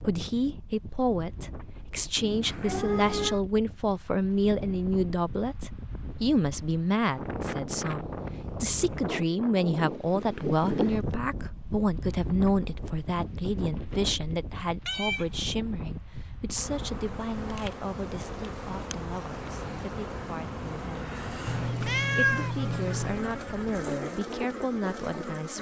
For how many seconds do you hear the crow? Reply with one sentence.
The crow can't be heard in this clip.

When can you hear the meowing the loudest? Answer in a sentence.
The volume of the meowing peaks at 22 seconds.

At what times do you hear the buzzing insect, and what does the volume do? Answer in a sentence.
You can hear the buzzing insect from 16.6 to 25.5 s, at a steady volume.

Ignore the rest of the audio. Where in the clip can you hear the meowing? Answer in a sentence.
You can hear the meowing from 2.1 to 3.4 s, from 14.8 to 15.2 s and from 21.4 to 23.2 s.